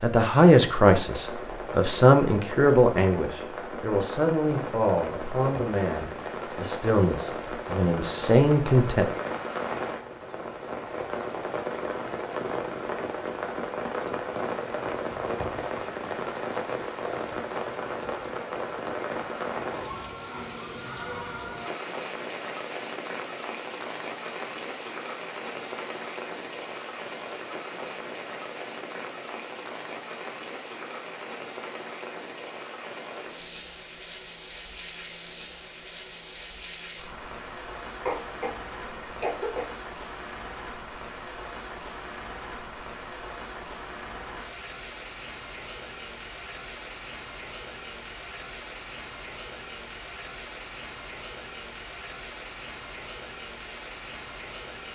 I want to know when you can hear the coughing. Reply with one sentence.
The coughing can be heard from 38.0 to 39.7 s.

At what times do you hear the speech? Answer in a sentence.
You can hear the speech from 0.0 to 9.1 s.